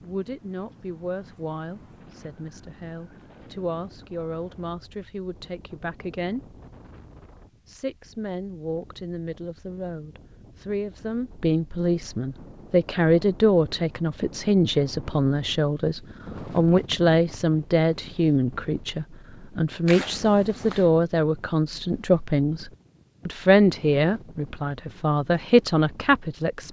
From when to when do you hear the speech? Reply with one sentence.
The speech can be heard from 0.0 to 6.5 s and from 7.7 to 26.6 s.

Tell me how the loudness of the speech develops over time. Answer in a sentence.
The loudness of the speech goes up.